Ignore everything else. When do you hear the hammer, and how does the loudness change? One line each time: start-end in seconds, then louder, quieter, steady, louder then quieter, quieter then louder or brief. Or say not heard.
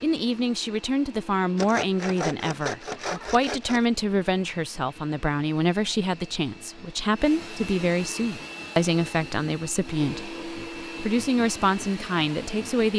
not heard.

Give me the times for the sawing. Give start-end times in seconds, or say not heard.
1.6-3.9.